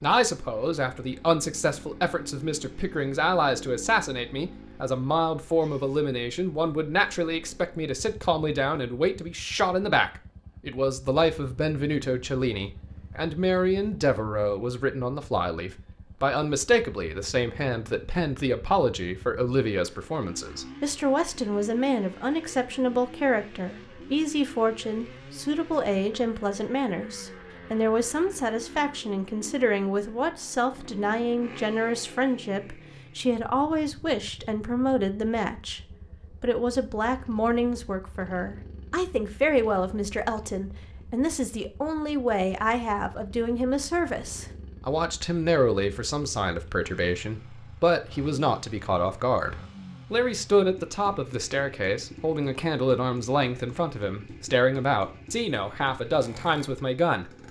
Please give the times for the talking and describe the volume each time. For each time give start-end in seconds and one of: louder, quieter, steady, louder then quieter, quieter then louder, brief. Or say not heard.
0.0-35.8 steady
36.4-57.3 steady.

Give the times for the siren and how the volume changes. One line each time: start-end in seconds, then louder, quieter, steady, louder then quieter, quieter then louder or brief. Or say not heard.
not heard.